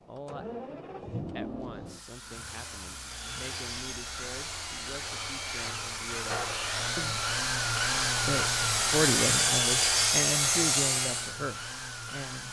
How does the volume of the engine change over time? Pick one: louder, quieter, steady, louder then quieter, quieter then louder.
louder then quieter.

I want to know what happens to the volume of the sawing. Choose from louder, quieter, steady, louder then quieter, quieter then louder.
louder.